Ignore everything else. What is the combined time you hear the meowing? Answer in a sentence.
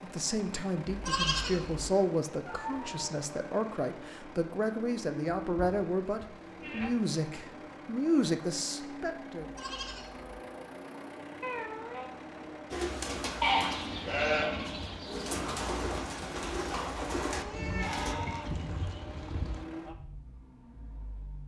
You can hear the meowing for 3 seconds altogether.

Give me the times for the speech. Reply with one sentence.
You can hear the speech from 0.0 to 9.4 s.